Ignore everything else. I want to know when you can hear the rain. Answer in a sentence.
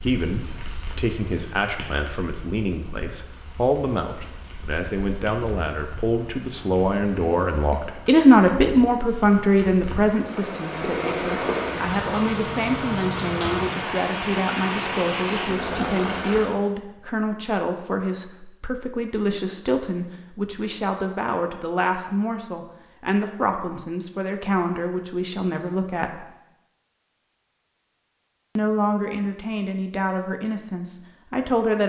The rain can be heard from 0.0 to 16.6 s.